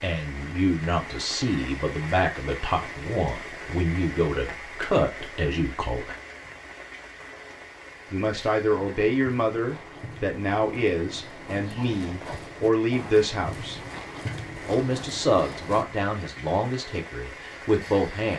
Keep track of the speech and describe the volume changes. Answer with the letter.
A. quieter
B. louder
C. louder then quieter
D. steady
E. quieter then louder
D.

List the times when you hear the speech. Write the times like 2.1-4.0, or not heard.
0.0-6.2, 8.1-13.8, 14.7-18.3.